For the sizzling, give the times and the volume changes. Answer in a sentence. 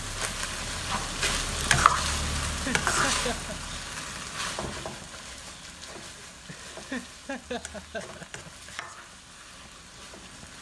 The sizzling can be heard from 0.0 to 10.5 s, getting quieter.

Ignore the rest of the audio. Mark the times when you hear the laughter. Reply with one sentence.
The laughter can be heard from 2.5 to 3.5 s and from 6.5 to 8.8 s.